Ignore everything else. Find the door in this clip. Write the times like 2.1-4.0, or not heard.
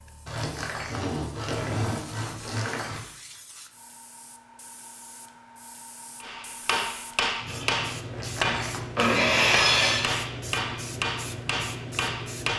0.3-3.0, 8.1-9.1.